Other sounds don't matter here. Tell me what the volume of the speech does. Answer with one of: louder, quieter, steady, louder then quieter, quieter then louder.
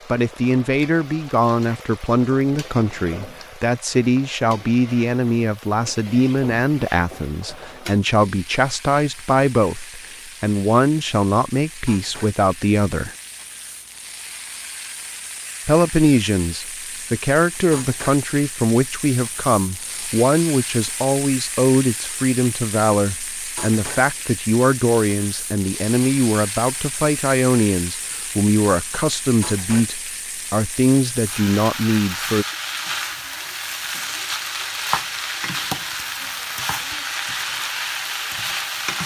steady.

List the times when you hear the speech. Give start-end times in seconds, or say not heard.
0.1-13.2, 15.7-32.5.